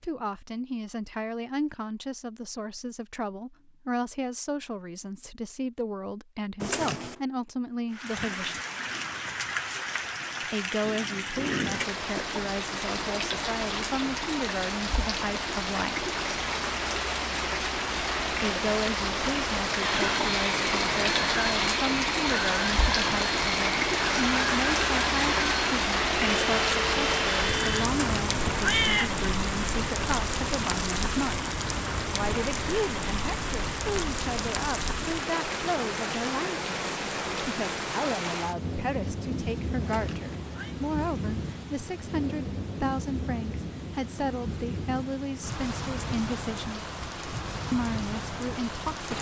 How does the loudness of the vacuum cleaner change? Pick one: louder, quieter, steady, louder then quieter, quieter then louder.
steady.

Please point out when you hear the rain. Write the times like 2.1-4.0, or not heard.
7.9-49.1.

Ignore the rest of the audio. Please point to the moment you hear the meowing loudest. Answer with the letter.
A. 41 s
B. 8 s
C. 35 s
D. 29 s
D.